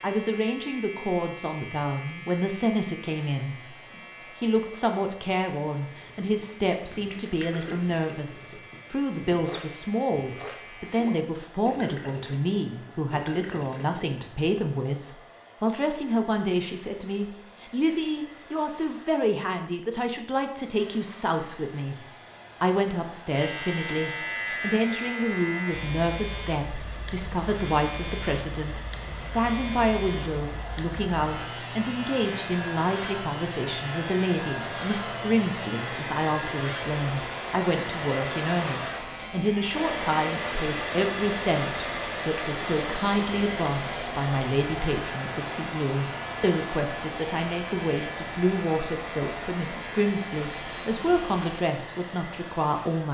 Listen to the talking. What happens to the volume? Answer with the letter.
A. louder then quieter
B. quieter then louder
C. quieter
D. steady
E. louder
D.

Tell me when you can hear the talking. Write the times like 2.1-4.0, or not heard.
0.0-53.0.